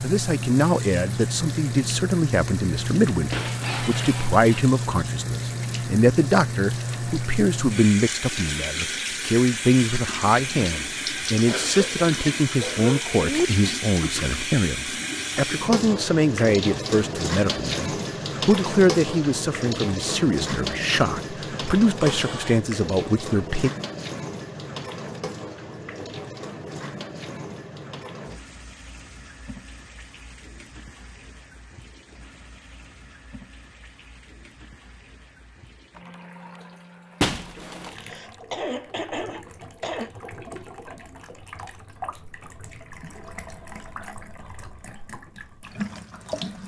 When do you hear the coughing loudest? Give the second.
13 s.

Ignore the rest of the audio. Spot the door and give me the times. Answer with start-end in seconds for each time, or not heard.
not heard.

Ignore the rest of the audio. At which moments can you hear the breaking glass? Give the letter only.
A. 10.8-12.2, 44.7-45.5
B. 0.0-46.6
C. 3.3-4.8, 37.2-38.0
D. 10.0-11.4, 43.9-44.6
C.